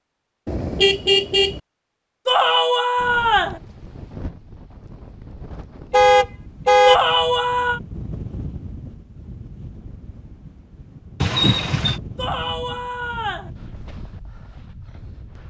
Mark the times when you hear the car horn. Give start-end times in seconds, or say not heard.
0.5-1.6, 5.9-7.0, 11.2-12.0.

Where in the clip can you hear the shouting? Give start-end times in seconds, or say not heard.
2.2-3.6, 6.8-7.8, 12.2-13.5.